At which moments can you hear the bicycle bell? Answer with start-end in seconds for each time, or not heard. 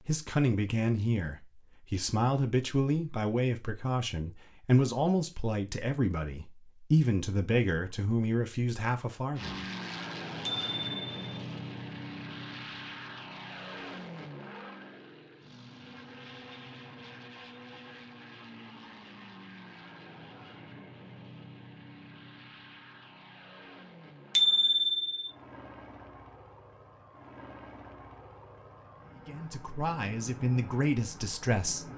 10.4-11.2, 24.4-25.3.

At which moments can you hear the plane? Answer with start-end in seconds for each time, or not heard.
9.3-31.9.